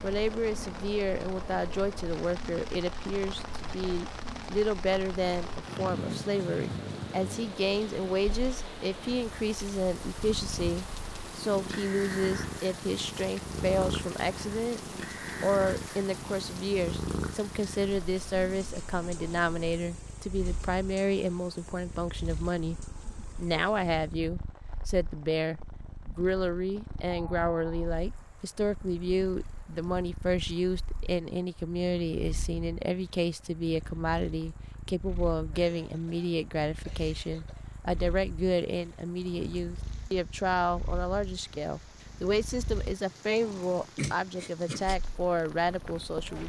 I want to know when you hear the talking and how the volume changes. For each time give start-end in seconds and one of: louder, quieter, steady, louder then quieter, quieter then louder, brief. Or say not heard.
0.0-14.8 steady
15.4-46.4 steady.